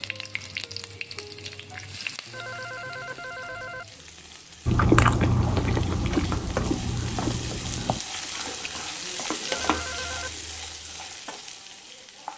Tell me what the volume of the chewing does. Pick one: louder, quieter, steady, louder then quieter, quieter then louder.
quieter.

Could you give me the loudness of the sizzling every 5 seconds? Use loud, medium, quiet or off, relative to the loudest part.
medium, loud, medium.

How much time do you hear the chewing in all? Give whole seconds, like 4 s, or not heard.
4 s.